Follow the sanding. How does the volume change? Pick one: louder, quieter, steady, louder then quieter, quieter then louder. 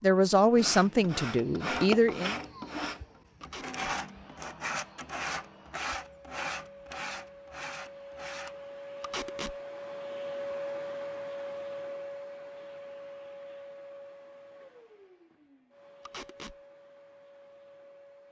quieter.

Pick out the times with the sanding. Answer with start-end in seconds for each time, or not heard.
0.6-8.6.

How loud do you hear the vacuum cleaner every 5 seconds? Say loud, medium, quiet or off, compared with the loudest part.
quiet, medium, loud, quiet.